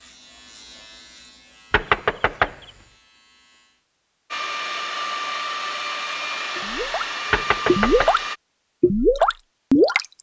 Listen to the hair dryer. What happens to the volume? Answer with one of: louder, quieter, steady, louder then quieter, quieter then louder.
steady.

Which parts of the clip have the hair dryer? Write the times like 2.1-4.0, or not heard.
4.3-8.4.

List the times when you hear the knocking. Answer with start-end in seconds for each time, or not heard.
1.7-2.7, 7.3-8.1.